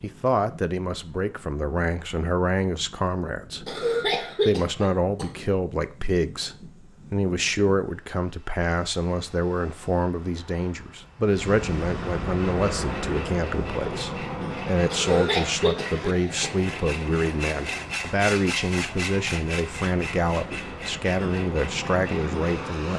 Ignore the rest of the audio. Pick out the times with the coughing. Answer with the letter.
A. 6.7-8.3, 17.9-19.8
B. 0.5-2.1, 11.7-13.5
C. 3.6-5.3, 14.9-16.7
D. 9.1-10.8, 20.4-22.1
C.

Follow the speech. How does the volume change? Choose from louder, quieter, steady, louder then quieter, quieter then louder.
steady.